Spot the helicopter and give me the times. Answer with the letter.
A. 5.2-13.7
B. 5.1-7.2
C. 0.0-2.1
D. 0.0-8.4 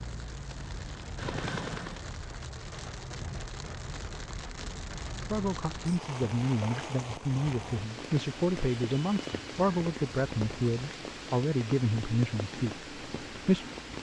C.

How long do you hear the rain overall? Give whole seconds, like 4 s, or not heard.
14 s.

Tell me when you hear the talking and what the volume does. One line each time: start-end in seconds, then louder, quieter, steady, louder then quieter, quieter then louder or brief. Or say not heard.
5.2-13.7 steady.